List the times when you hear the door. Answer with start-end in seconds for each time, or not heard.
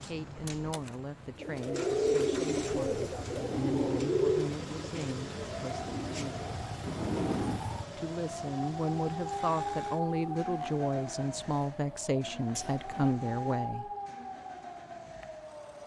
0.3-0.9, 6.8-7.7, 12.5-13.2.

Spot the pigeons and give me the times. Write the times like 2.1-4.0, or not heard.
1.4-6.6.